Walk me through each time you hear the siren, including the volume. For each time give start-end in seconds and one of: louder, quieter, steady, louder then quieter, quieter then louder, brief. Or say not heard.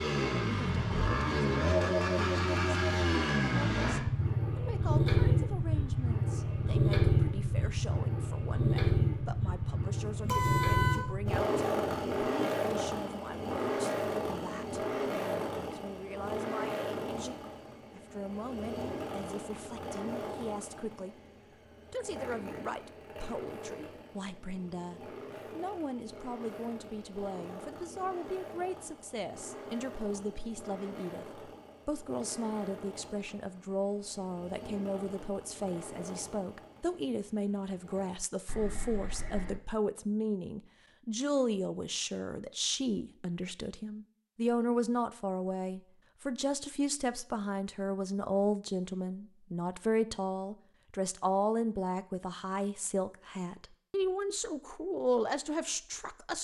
not heard.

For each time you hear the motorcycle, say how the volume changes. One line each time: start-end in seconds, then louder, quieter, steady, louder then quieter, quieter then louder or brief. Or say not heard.
0.0-38.1 quieter.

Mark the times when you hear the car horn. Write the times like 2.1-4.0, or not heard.
10.2-11.1, 38.5-39.6.